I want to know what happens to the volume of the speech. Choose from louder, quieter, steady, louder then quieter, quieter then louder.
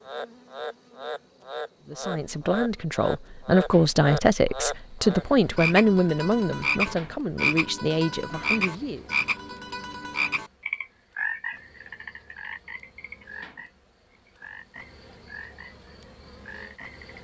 louder then quieter.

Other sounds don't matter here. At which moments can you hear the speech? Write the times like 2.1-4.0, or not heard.
1.9-9.1.